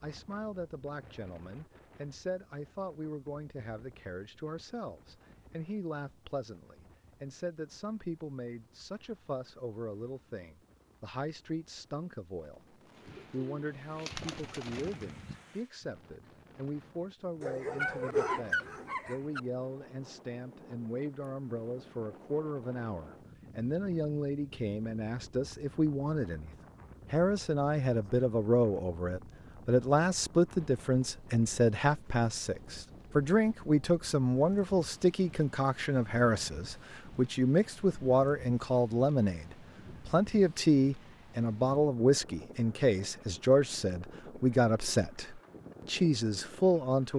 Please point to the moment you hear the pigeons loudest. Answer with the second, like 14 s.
14 s.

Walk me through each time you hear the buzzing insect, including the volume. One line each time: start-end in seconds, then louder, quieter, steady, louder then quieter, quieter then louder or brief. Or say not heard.
not heard.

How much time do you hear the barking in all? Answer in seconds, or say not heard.
2 s.